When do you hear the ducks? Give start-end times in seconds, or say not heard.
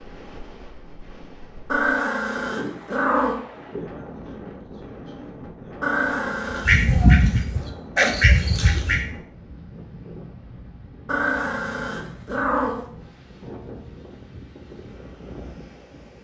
6.5-9.1.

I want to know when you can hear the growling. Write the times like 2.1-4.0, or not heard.
1.6-3.4, 5.8-6.7, 11.1-12.8.